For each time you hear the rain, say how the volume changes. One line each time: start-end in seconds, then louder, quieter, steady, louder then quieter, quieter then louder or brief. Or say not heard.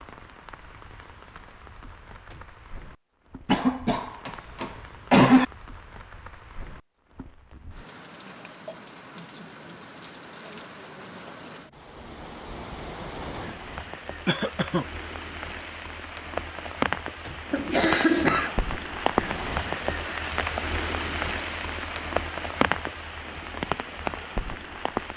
0.0-25.1 louder.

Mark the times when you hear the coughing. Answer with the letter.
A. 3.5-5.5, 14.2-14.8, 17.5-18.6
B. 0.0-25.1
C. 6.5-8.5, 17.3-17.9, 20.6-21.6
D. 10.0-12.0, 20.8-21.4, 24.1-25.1
A.